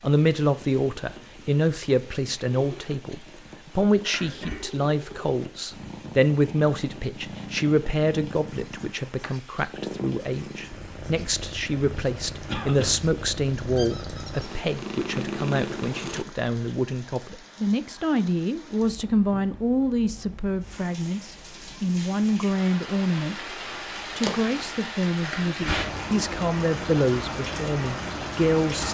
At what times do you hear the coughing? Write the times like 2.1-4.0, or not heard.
4.0-4.7, 12.4-12.9, 25.2-25.9.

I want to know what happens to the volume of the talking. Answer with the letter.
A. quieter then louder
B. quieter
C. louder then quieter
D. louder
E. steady
E.